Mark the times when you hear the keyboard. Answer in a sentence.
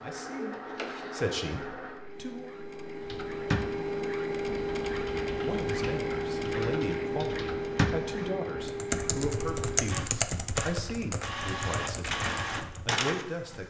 You can hear the keyboard from 3.0 to 12.9 s.